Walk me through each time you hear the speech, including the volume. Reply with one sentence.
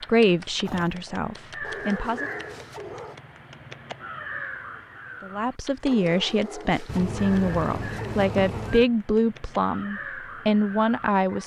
The speech can be heard briefly from 0.1 to 2.3 s; and from 5.2 to 11.4 s, at a steady volume.